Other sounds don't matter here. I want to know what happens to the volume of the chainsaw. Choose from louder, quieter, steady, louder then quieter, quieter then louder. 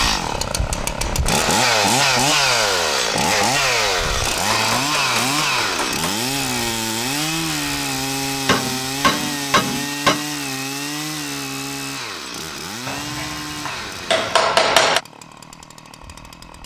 quieter.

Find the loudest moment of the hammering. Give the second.
15 s.